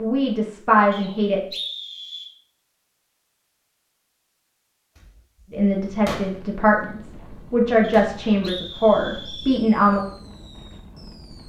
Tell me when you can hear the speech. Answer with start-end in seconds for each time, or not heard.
0.0-1.4, 5.5-10.1.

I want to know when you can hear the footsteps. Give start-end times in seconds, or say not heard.
not heard.